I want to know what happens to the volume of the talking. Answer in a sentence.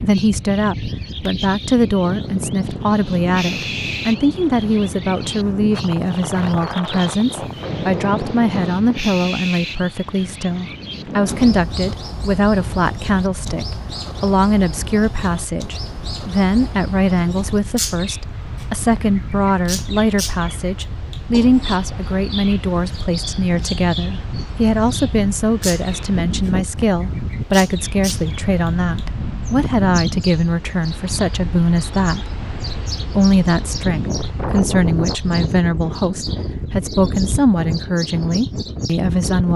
The volume of the talking stays about the same.